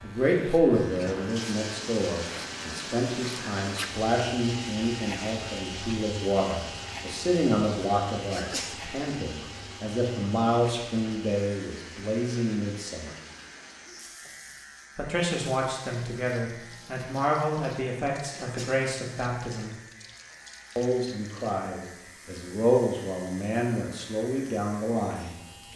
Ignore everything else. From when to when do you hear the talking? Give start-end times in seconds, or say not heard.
0.0-13.1, 14.9-19.8, 20.8-25.7.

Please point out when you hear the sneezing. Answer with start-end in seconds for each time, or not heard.
8.3-8.9, 18.3-18.9.